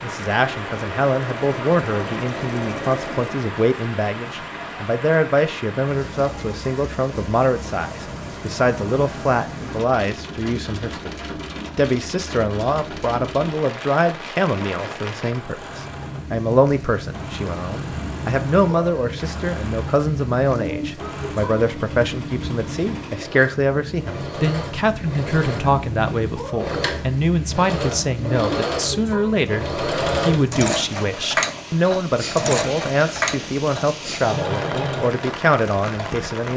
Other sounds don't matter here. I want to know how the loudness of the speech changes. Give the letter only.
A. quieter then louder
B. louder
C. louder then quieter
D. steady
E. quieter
D.